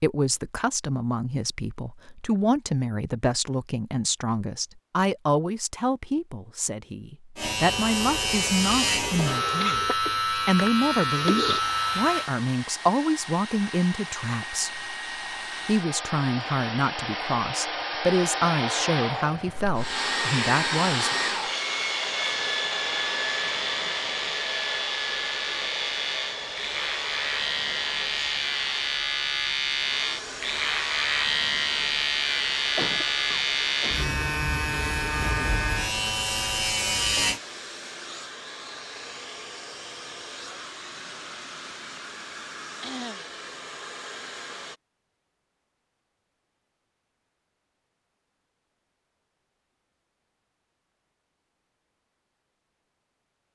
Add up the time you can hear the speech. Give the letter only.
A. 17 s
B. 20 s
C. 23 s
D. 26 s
B.